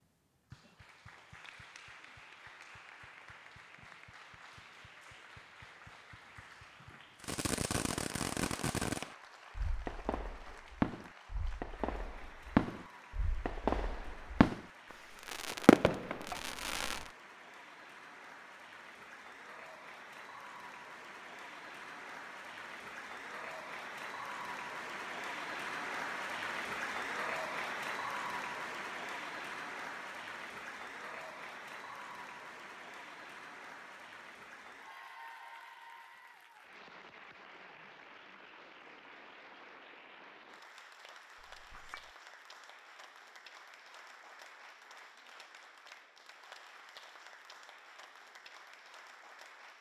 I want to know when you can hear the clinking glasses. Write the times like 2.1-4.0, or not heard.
16.3-17.1, 41.4-42.1.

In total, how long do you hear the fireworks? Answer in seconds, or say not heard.
9 s.